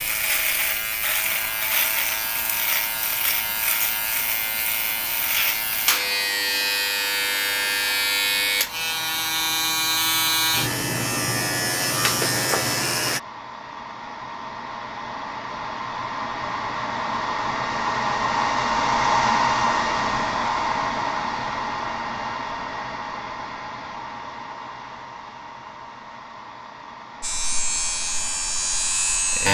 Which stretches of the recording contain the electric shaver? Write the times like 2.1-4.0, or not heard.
0.0-13.2, 27.2-29.5.